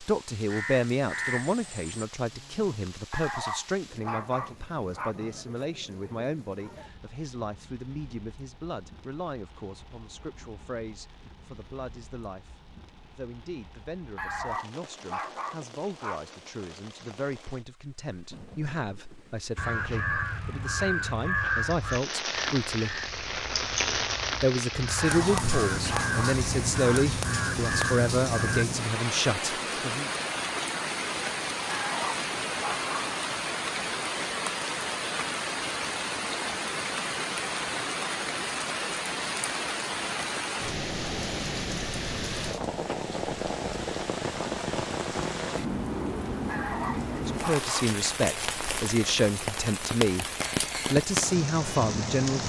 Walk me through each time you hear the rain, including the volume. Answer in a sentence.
You can hear the rain from 0.0 to 52.4 s, getting louder.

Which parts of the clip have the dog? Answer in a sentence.
You can hear the dog from 3.1 to 5.2 s, from 14.2 to 16.2 s, from 24.9 to 27.0 s, from 31.6 to 33.1 s and from 46.5 to 47.9 s.